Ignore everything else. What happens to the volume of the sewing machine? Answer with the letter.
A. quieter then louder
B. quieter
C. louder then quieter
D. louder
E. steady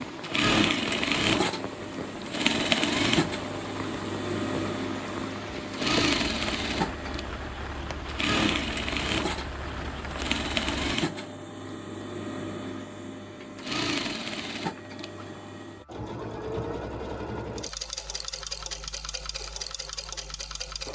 B.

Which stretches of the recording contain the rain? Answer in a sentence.
The rain can be heard from 0.0 to 10.9 s.